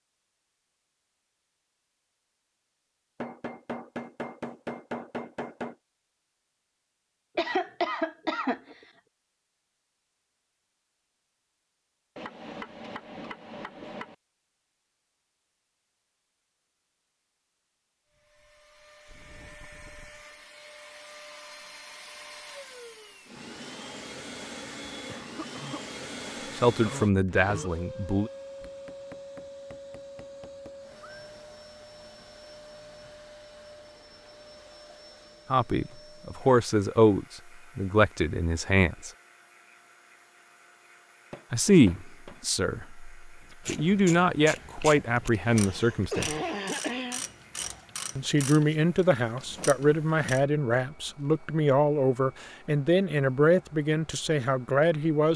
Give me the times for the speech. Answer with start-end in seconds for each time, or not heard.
26.6-28.3, 35.5-39.1, 41.5-46.4, 48.1-55.3.